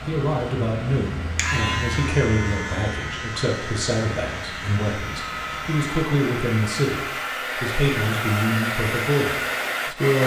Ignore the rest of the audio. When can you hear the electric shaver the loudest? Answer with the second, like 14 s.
2 s.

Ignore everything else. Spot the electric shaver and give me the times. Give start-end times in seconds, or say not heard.
0.0-6.0.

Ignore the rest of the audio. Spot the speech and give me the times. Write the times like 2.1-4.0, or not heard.
0.1-10.2.